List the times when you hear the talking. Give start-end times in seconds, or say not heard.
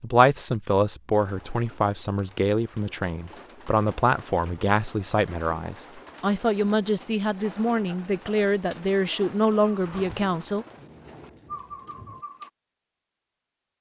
0.0-10.7.